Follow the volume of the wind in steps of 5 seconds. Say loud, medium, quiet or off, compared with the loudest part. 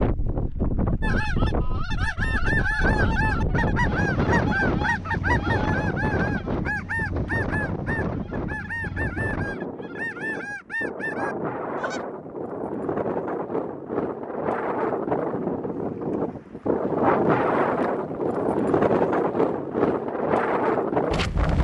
loud, medium, medium, loud, loud.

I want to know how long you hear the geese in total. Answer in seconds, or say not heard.
11 s.